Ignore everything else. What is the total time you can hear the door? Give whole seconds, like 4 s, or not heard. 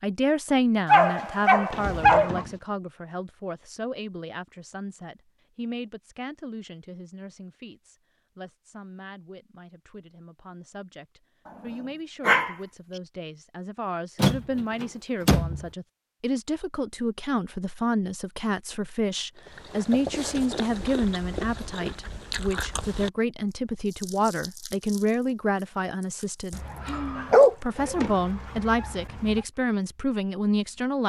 3 s.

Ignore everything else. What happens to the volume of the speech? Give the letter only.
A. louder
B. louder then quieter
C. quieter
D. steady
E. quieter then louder
E.